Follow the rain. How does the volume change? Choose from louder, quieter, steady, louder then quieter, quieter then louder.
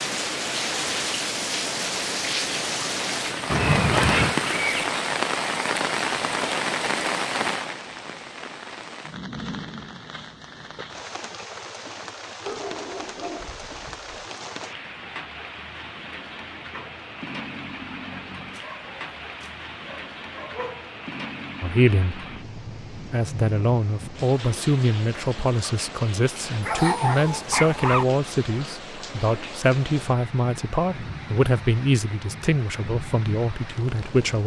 quieter.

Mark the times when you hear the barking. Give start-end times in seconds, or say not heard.
3.5-5.0, 12.4-14.2, 18.5-21.0, 26.6-28.1.